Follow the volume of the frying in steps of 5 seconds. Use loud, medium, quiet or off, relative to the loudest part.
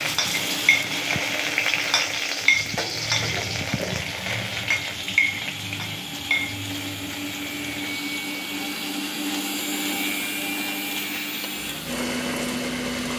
loud, medium, quiet.